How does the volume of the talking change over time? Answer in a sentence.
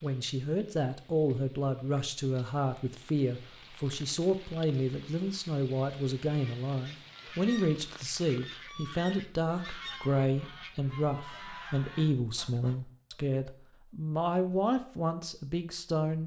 The loudness of the talking stays about the same.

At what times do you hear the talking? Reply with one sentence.
The talking can be heard from 0.0 to 16.2 s.